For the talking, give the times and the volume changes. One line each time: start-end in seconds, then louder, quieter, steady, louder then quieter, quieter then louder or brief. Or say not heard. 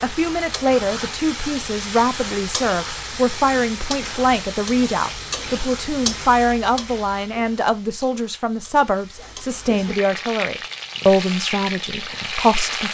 0.0-12.8 steady.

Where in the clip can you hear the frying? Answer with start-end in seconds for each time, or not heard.
0.0-12.8.